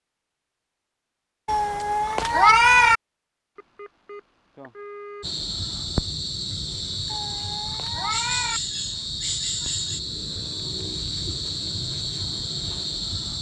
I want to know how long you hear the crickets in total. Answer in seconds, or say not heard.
8 s.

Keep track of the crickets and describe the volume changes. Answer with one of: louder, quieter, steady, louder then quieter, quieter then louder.
steady.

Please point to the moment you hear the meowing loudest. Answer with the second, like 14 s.
3 s.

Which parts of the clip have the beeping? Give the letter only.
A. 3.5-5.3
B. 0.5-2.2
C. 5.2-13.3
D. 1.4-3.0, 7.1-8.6
A.